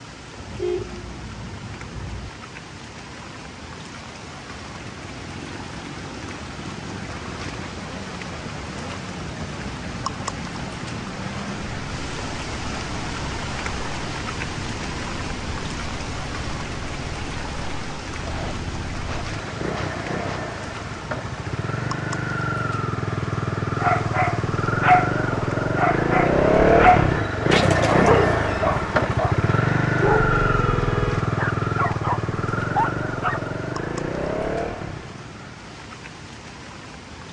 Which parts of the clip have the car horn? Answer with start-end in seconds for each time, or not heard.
0.3-2.3, 30.3-31.2.